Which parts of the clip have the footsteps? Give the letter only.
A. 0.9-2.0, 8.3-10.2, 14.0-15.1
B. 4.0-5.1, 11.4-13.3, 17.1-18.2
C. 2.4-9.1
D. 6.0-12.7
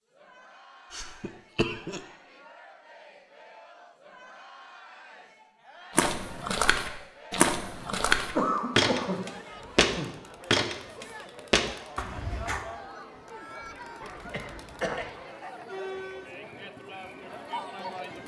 D.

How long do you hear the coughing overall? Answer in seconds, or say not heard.
4 s.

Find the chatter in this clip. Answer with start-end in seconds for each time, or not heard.
0.1-18.2.